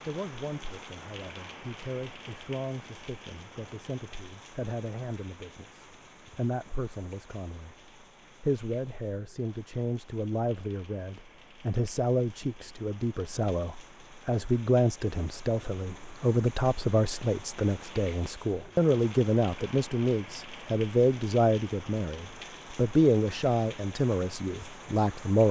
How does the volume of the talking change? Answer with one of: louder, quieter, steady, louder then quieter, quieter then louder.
louder.